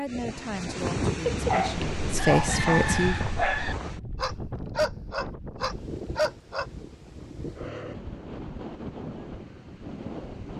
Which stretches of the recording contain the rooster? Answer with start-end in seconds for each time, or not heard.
1.7-3.8.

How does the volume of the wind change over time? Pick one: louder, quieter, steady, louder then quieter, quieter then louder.
quieter.